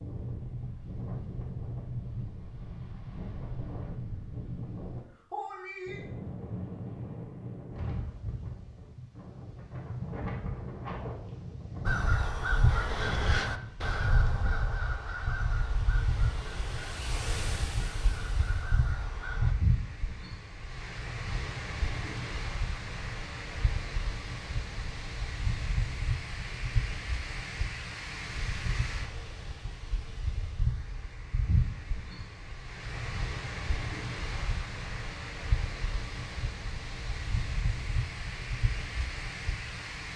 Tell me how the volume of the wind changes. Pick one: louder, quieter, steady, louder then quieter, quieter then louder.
steady.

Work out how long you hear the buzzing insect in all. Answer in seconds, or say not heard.
not heard.